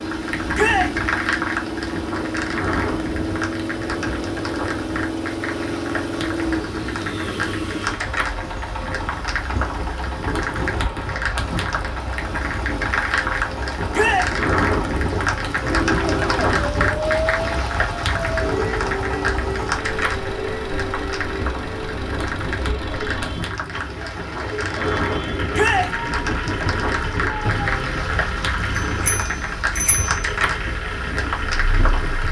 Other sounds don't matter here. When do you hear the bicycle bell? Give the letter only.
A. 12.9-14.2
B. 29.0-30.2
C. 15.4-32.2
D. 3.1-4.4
B.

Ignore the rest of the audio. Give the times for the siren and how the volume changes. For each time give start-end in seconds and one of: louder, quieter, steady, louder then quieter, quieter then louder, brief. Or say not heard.
15.4-32.2 quieter.